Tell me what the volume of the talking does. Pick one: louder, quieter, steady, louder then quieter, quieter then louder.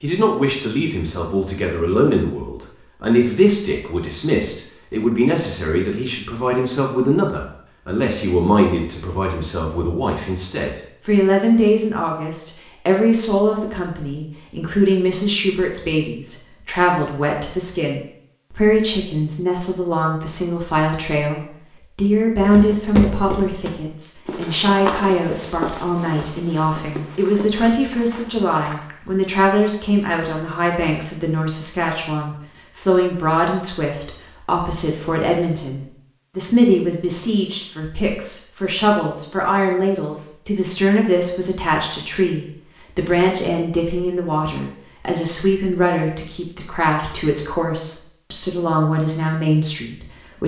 steady.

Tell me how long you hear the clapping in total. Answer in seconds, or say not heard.
not heard.